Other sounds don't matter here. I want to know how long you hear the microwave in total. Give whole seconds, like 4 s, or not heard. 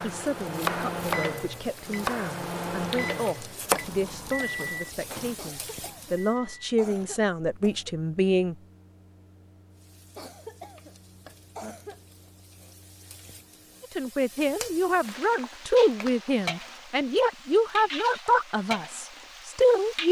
14 s.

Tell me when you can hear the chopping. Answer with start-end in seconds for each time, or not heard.
0.0-3.8.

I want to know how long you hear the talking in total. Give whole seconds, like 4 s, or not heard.
15 s.